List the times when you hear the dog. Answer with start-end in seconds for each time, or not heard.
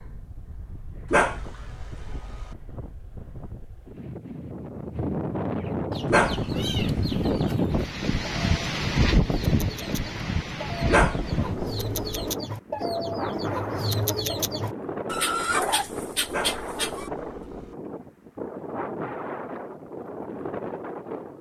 1.1-2.5, 6.1-7.5, 10.9-12.3, 16.3-17.8.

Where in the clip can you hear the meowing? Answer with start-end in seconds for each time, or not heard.
not heard.